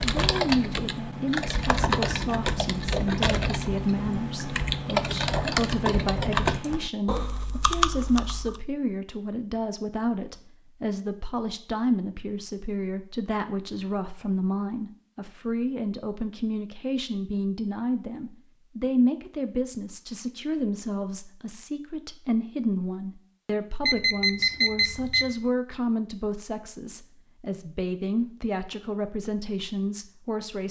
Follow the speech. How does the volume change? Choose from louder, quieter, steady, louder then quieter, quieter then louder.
steady.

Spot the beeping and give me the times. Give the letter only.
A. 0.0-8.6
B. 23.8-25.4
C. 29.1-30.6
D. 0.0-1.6
B.